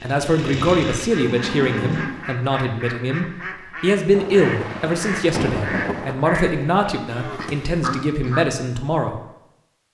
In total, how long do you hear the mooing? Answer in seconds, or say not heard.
2 s.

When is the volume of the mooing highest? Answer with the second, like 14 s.
2 s.